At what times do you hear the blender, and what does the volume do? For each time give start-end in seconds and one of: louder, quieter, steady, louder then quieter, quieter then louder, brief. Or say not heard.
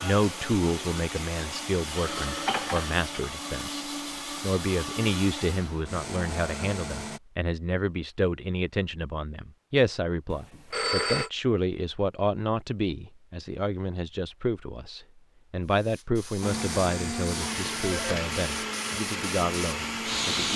0.0-7.2 steady
16.4-20.5 steady.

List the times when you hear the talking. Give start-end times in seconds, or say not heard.
0.0-20.5.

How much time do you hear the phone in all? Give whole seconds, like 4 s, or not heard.
3 s.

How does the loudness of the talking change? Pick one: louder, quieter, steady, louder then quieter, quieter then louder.
steady.